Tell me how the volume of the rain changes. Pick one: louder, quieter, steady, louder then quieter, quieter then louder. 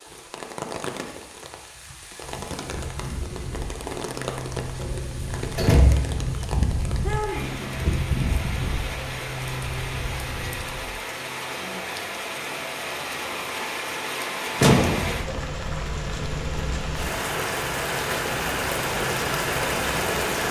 louder.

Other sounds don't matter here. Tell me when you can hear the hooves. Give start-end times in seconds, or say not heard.
1.8-10.9.